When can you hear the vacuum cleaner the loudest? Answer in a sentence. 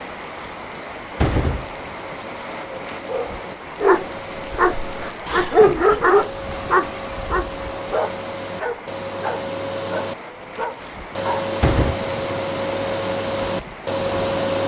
The loudest moment of the vacuum cleaner is at 14 seconds.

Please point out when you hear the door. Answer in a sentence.
The door can be heard from 0.3 to 1.8 s, from 5.2 to 6.0 s and from 10.8 to 11.9 s.